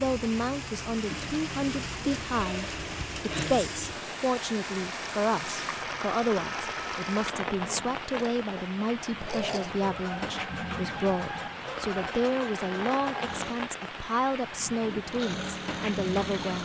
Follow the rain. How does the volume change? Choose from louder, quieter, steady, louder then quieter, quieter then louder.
steady.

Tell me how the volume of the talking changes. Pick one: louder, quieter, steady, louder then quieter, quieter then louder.
steady.